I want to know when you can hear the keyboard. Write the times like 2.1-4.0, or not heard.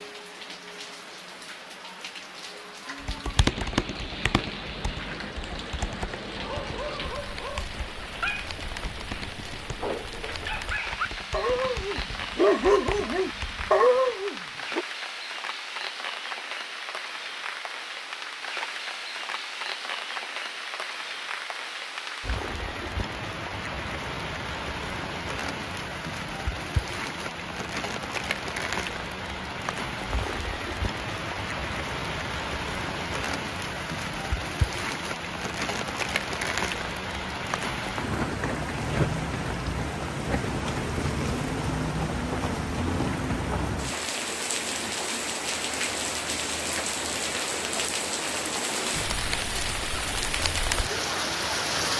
3.0-13.8.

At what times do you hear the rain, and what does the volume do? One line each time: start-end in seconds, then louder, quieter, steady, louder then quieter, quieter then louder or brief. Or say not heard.
0.0-51.9 louder.